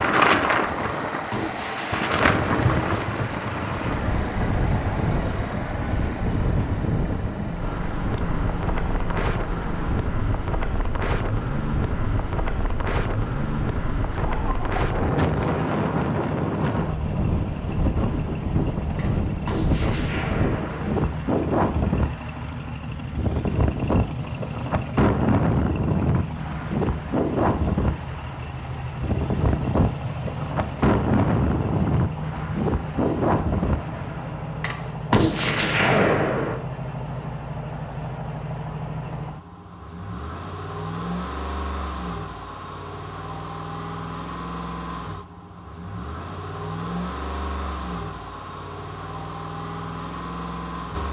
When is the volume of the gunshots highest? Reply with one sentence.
The loudest moment of the gunshots is at 36 seconds.